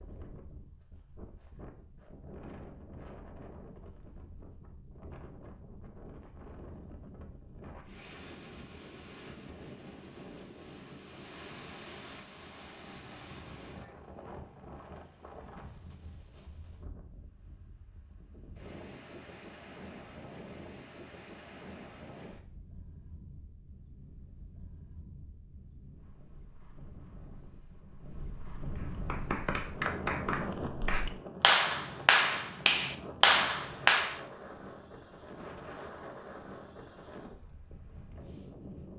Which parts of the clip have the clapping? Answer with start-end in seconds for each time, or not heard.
28.8-34.2.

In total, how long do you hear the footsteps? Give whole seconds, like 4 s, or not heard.
not heard.